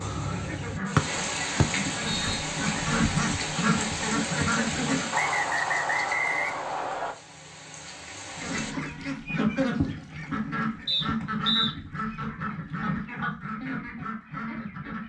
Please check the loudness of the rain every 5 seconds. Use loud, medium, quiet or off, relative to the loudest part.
loud, medium, off.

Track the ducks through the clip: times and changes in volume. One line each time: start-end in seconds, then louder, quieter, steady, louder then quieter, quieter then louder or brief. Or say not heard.
0.1-5.1 louder
8.3-15.0 quieter.